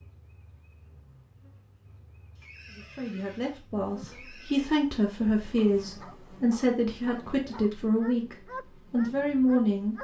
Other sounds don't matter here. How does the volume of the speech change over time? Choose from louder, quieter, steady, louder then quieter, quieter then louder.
louder.